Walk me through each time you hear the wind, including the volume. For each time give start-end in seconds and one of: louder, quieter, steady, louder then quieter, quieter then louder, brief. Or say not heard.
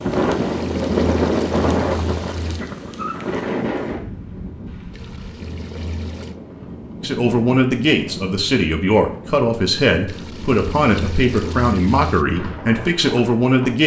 0.0-13.8 quieter.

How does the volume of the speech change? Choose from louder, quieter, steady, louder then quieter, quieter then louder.
steady.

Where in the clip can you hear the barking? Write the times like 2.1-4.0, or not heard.
not heard.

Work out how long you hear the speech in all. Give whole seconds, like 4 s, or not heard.
7 s.